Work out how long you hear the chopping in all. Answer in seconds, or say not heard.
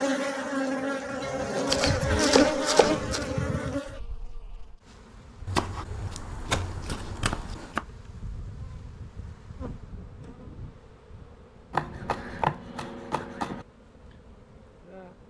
6 s.